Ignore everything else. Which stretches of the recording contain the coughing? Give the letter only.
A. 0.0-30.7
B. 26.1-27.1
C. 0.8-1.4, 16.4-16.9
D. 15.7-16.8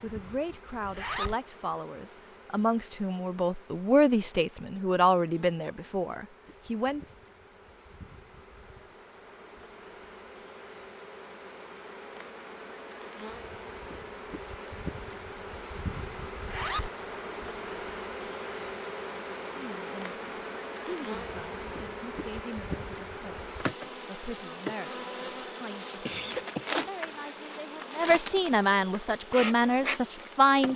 B.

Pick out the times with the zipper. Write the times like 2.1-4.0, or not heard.
0.8-1.4, 16.4-16.9.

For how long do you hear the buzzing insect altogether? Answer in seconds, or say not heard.
31 s.